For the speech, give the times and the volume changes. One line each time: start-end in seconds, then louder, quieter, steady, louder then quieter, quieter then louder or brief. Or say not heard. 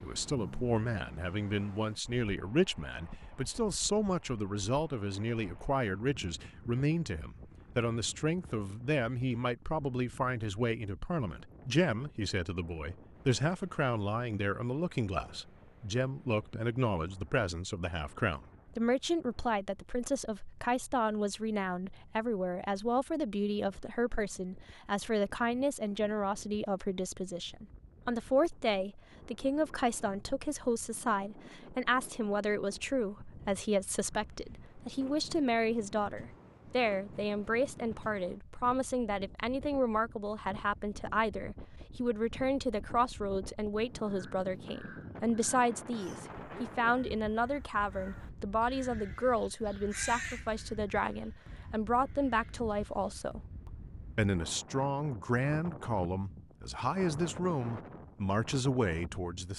0.0-59.5 steady.